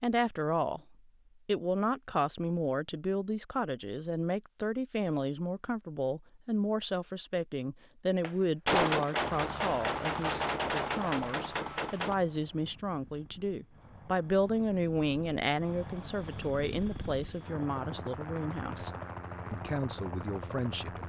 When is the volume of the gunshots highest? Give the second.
9 s.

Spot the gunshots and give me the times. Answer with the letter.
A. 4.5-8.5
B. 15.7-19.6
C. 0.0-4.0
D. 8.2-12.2
D.